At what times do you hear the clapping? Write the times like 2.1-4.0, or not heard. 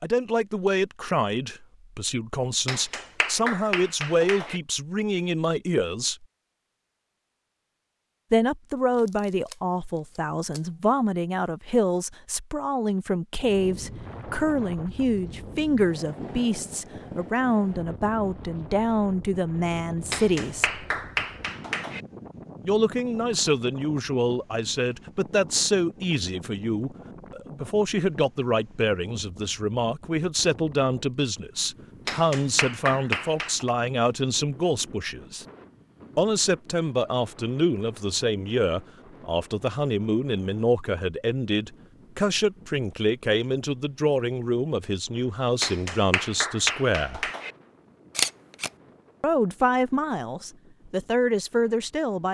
2.6-4.6, 20.1-22.0, 32.0-33.7, 45.6-47.5.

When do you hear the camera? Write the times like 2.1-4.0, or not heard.
8.9-10.7, 48.1-48.7.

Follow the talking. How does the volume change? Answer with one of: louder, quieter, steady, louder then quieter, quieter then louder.
steady.